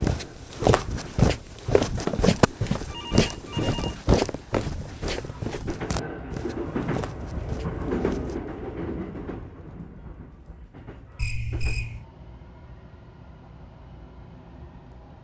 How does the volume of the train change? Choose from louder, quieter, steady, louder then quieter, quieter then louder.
louder then quieter.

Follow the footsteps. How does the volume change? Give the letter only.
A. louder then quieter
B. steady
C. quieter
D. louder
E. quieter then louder
C.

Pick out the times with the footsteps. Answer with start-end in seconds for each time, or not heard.
0.0-8.4.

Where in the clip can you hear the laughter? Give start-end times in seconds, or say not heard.
not heard.